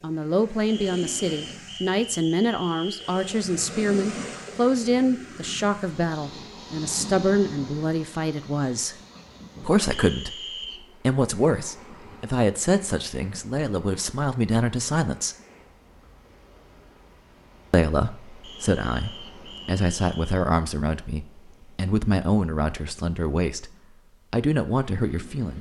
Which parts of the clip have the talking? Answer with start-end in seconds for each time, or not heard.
0.0-9.0, 9.6-15.3, 17.7-25.5.